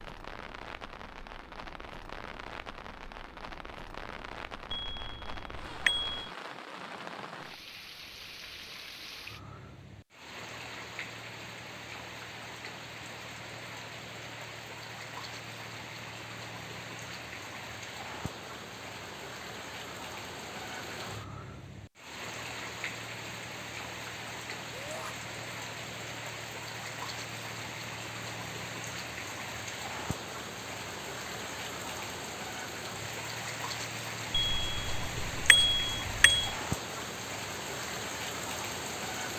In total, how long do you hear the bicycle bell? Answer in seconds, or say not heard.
4 s.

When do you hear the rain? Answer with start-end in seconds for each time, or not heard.
0.0-39.3.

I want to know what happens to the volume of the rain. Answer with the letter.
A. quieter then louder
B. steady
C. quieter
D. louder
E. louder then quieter
D.